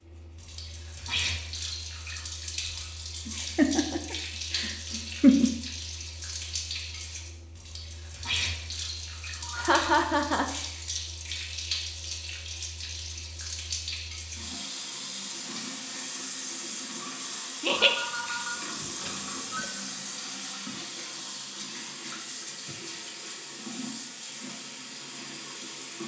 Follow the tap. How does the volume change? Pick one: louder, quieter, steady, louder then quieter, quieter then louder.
steady.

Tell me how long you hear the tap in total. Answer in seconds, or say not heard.
26 s.